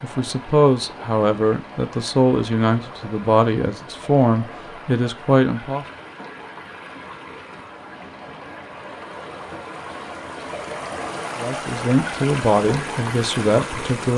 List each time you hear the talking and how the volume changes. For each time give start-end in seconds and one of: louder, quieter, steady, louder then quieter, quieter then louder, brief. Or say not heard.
0.0-5.8 steady
11.3-14.1 brief.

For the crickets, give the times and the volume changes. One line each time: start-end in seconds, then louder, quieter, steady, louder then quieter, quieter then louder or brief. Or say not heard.
not heard.